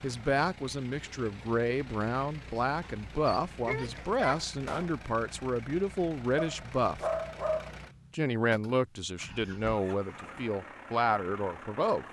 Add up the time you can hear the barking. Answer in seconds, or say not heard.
3 s.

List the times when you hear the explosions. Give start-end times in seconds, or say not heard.
4.6-5.0.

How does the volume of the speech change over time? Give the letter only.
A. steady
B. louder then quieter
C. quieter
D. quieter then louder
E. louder
A.